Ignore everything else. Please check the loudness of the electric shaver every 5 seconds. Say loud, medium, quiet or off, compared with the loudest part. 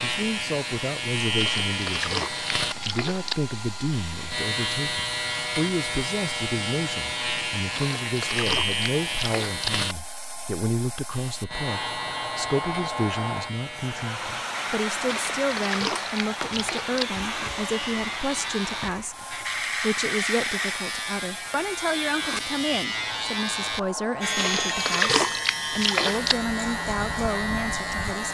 loud, loud, medium, loud, loud, loud.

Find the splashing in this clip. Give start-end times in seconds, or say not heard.
1.4-3.4, 7.7-9.7, 15.1-17.1, 24.4-26.4.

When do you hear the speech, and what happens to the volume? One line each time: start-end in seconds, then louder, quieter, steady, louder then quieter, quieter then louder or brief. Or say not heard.
0.0-28.2 steady.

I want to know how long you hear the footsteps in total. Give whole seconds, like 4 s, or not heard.
not heard.